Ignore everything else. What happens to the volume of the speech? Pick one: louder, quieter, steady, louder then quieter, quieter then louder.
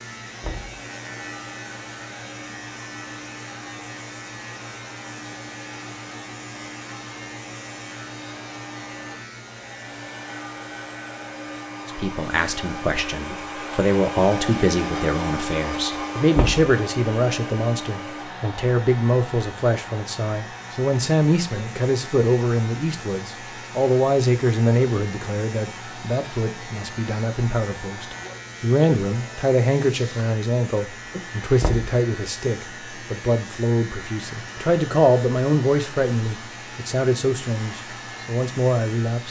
steady.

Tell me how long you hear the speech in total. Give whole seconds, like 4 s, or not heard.
27 s.